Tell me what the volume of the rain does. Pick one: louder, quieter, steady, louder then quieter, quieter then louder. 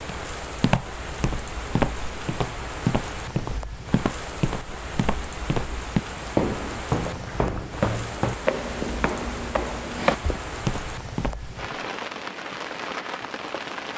steady.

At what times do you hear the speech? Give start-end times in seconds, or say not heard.
not heard.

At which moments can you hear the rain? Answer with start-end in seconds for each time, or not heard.
0.0-13.9.